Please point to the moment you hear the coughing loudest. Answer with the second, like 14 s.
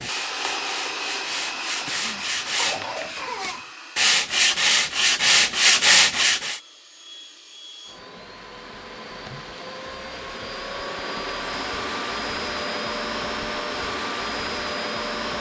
3 s.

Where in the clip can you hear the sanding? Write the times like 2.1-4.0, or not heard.
0.0-6.6.